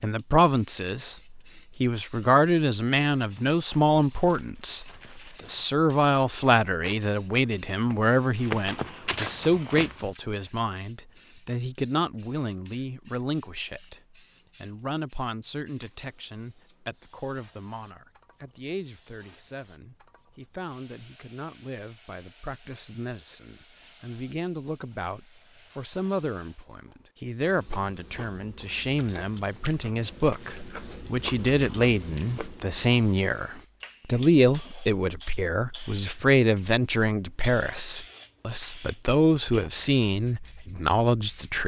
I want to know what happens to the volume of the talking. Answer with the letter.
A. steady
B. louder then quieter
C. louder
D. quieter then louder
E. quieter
D.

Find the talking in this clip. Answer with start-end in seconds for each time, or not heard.
0.0-41.6.